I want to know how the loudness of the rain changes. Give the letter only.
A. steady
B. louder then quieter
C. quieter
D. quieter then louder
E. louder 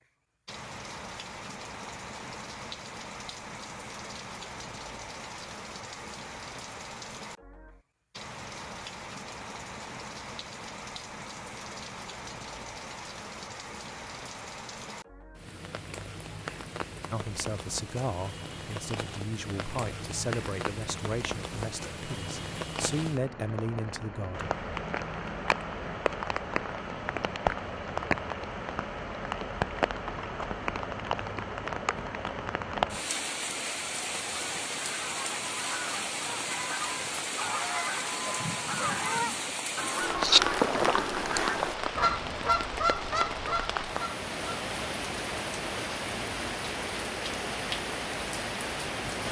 E.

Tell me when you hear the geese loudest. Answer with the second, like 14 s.
40 s.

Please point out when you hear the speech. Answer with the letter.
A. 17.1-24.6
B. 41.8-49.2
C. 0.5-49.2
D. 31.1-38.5
A.